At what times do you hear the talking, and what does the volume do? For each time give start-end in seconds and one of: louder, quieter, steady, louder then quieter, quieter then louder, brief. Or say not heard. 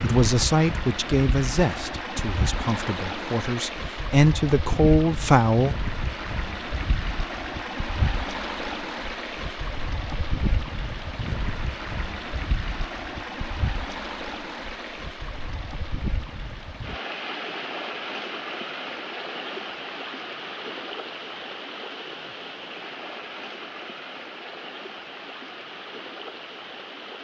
0.0-5.8 quieter then louder.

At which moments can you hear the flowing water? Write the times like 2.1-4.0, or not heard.
0.0-27.1.